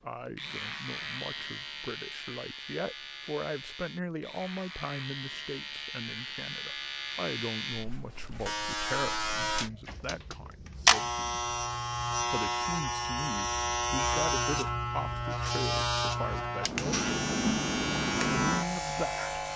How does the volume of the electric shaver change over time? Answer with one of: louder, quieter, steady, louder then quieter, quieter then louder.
louder.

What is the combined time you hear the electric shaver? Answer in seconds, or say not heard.
19 s.